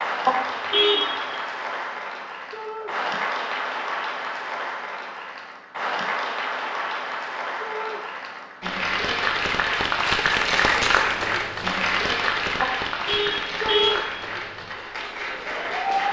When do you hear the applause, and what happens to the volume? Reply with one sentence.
The applause can be heard from 0.0 to 16.0 s, getting louder then quieter.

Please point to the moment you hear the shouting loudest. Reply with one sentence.
The loudest moment of the shouting is at 14 seconds.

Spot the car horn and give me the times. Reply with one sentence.
You can hear the car horn from 0.2 to 1.4 s and from 12.6 to 13.9 s.